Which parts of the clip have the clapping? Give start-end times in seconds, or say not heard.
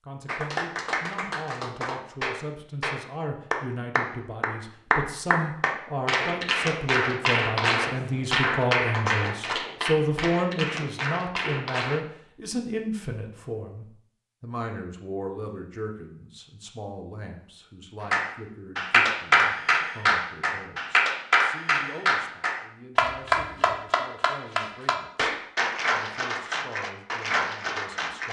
0.2-12.0, 18.1-28.2.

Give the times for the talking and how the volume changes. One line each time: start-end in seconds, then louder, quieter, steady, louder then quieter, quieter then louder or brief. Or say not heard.
0.0-25.3 louder then quieter
25.9-28.2 brief.